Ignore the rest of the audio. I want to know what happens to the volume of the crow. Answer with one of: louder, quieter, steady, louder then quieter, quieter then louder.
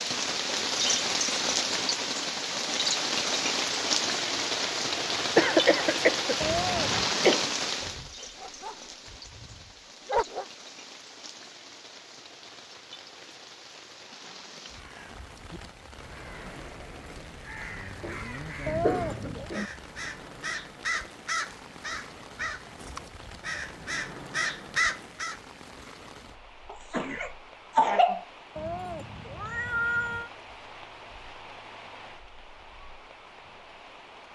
louder.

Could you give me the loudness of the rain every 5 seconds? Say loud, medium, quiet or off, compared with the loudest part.
loud, loud, quiet, quiet, quiet, quiet, quiet.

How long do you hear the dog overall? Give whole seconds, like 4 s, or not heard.
3 s.